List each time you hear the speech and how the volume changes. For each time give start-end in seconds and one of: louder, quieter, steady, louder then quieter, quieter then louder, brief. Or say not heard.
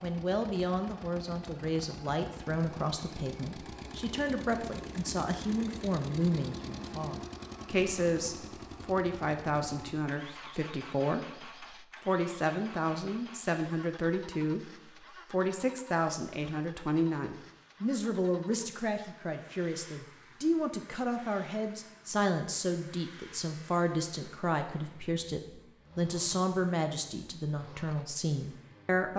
0.0-29.1 steady.